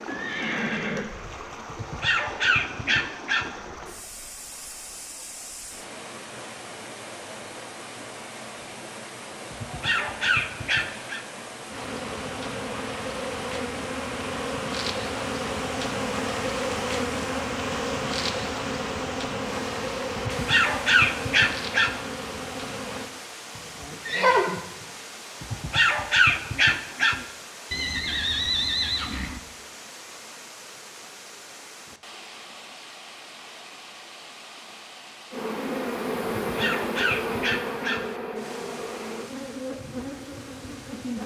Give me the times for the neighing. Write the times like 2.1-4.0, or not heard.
0.1-1.1, 23.6-24.6, 27.7-29.4.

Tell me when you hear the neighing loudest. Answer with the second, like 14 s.
24 s.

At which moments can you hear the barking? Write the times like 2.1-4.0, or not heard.
1.7-3.5, 9.5-11.2, 20.1-22.0, 25.4-27.2, 36.5-38.1.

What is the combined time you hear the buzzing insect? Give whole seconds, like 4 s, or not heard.
17 s.